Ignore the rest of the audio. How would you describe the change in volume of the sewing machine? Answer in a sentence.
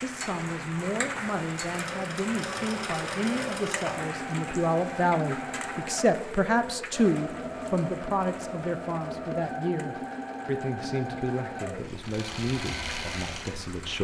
The loudness of the sewing machine stays about the same.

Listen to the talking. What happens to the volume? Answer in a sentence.
The loudness of the talking goes up, then down.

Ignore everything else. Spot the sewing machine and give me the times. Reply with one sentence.
You can hear the sewing machine from 1.6 to 13.8 s.